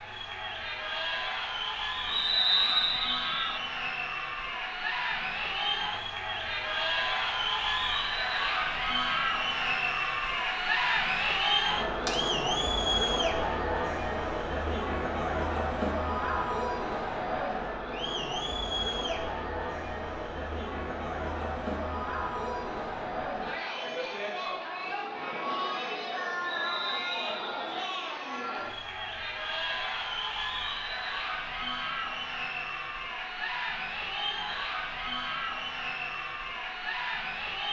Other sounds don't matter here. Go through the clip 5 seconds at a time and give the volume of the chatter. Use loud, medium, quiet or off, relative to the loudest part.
medium, loud, loud, loud, medium, medium, medium, medium.